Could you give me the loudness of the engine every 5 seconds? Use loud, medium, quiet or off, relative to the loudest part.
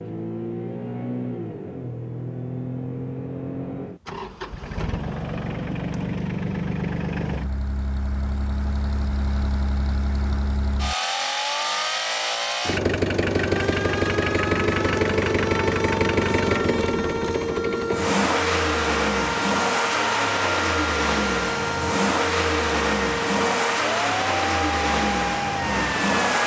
medium, medium, loud, loud, loud, loud.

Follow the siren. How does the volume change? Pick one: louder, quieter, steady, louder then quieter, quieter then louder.
steady.